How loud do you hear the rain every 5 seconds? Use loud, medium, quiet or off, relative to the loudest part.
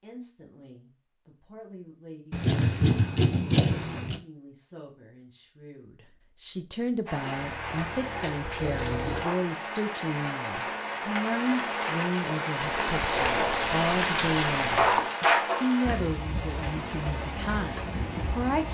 off, medium, loud, loud.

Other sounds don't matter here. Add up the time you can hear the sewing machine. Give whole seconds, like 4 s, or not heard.
2 s.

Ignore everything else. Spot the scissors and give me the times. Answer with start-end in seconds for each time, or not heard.
2.3-4.2, 12.6-15.1.